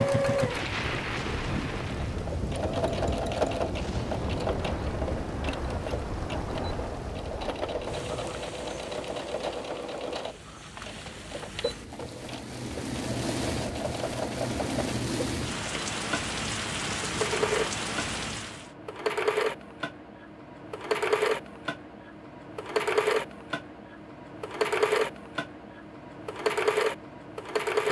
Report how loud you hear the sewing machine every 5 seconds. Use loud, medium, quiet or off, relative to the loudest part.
loud, medium, medium, loud, loud, loud.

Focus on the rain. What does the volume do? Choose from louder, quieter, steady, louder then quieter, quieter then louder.
quieter then louder.